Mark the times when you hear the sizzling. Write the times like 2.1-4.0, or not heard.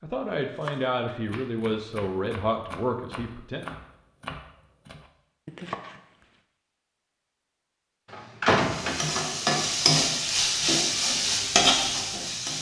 8.6-12.5.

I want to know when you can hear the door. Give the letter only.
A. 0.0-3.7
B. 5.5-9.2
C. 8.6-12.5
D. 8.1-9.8
D.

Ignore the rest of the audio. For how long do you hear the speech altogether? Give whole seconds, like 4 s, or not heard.
4 s.